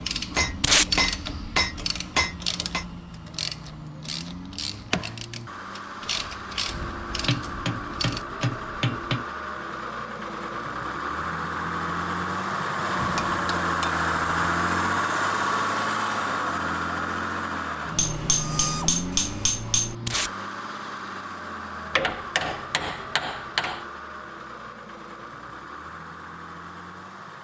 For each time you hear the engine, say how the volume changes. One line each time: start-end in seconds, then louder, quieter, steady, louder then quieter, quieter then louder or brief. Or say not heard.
0.0-27.3 louder then quieter.